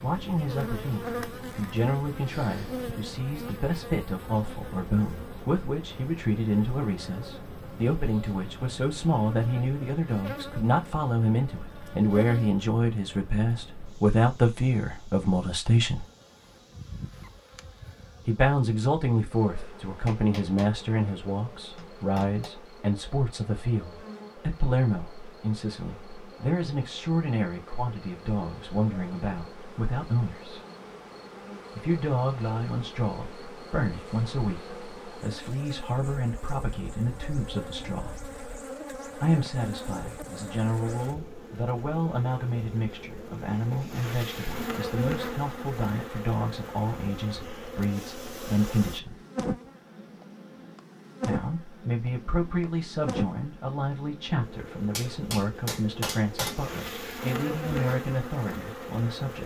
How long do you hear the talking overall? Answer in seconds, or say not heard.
53 s.